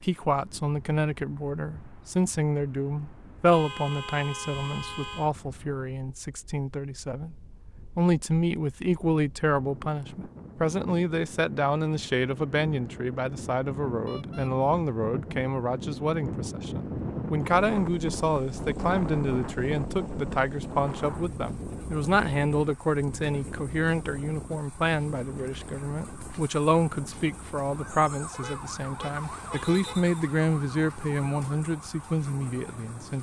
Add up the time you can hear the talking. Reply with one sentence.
The talking can be heard for 33 seconds in total.